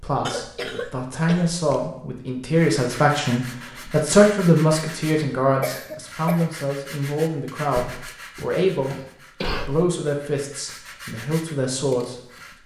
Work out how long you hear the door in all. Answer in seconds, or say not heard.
2 s.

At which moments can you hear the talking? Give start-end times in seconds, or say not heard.
0.0-12.6.